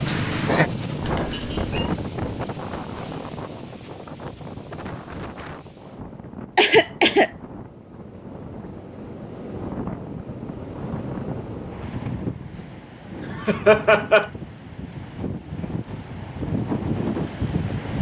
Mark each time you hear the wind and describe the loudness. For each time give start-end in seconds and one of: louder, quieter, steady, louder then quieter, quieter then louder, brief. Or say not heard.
0.0-17.9 quieter then louder.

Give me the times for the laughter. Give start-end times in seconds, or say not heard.
0.1-0.7, 6.5-7.3, 13.3-14.3.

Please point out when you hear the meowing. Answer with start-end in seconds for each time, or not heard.
1.0-1.9.